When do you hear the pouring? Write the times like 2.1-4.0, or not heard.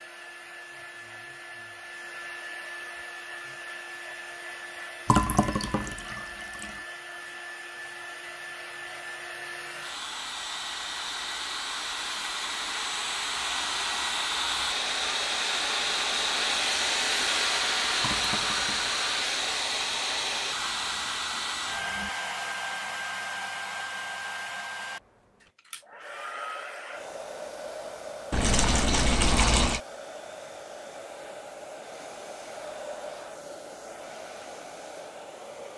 5.0-6.8, 18.0-19.1, 28.3-29.8.